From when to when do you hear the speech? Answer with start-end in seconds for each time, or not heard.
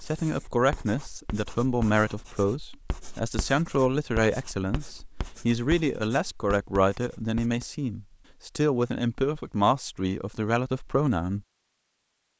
0.0-11.4.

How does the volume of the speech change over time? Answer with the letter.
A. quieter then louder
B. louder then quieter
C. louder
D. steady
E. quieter
D.